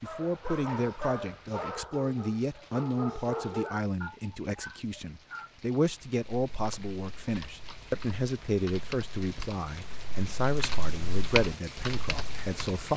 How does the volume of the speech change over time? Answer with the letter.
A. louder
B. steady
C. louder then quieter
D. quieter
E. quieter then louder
B.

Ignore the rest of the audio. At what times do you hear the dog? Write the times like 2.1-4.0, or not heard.
0.0-5.5.